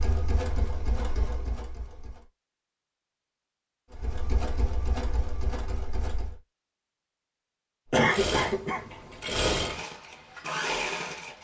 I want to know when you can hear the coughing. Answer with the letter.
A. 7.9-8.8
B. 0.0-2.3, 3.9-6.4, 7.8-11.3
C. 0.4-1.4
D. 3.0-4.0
A.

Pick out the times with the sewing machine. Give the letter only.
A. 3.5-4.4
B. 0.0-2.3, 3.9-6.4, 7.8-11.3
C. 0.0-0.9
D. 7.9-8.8
B.